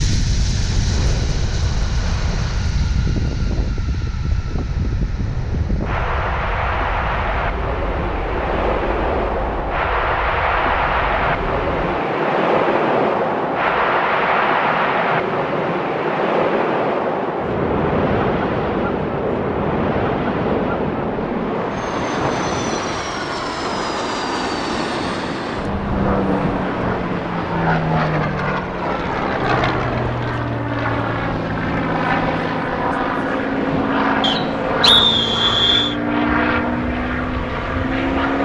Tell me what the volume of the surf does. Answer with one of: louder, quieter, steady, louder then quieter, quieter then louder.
louder then quieter.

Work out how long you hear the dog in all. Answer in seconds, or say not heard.
not heard.